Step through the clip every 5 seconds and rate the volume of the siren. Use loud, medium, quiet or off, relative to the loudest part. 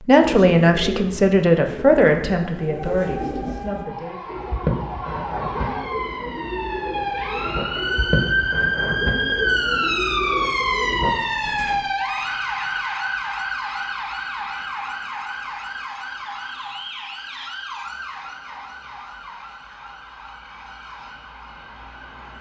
medium, loud, loud, medium, quiet.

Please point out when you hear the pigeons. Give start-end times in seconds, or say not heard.
0.1-11.8.